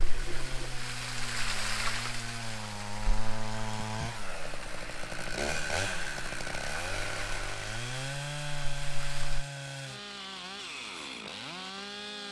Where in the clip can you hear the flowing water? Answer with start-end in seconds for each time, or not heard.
0.0-9.4.